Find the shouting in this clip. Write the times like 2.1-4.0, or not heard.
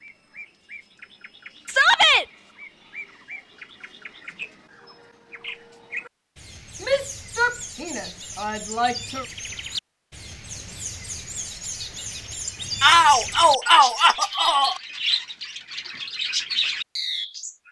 1.6-2.2, 6.8-9.2, 12.8-14.8.